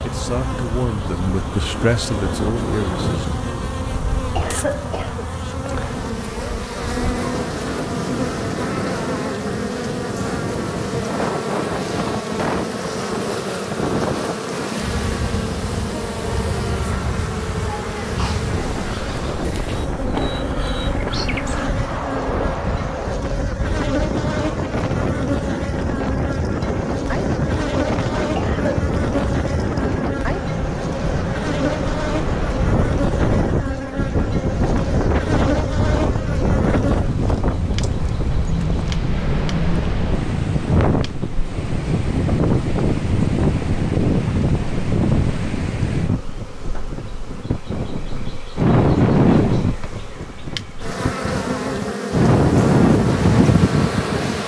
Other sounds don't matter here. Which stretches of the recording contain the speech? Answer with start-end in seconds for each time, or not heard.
0.0-3.4.